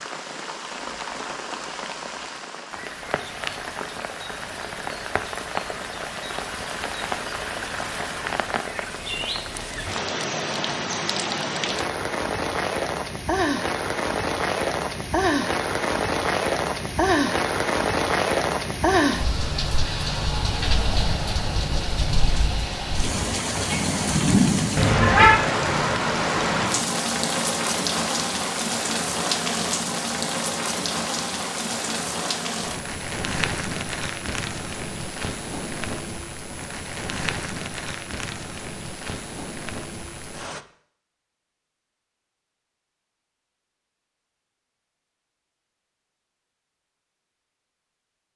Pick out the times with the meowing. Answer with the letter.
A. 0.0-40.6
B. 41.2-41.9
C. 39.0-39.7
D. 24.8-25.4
D.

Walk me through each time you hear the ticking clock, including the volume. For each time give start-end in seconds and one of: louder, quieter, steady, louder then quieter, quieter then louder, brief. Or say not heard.
not heard.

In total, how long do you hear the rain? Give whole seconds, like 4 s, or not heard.
41 s.